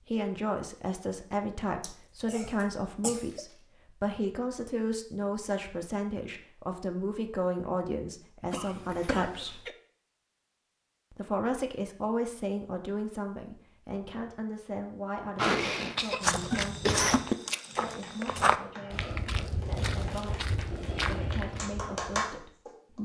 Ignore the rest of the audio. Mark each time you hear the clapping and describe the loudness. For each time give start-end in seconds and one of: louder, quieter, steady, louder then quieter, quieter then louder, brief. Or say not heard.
17.3-22.7 louder.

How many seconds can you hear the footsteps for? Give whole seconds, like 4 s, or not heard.
6 s.